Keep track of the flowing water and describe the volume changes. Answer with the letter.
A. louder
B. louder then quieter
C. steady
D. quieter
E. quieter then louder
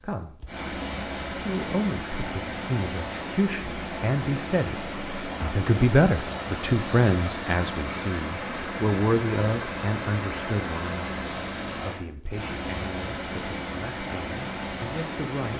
C.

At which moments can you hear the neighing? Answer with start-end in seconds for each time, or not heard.
not heard.